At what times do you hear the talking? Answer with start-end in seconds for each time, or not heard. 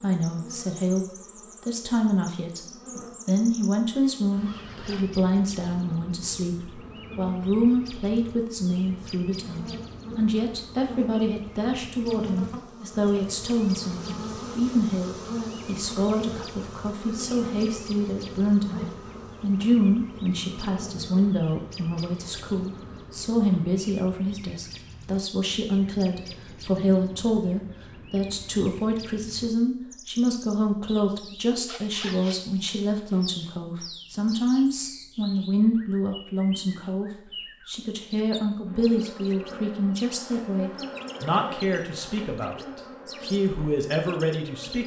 0.0-44.8.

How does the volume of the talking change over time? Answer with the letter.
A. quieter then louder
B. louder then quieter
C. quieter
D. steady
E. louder
D.